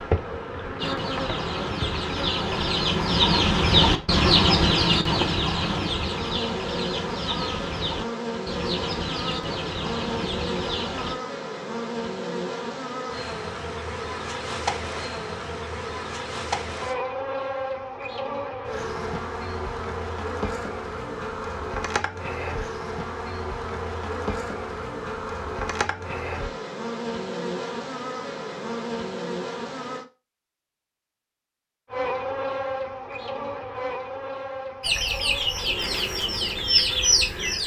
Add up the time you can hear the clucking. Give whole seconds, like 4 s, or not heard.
13 s.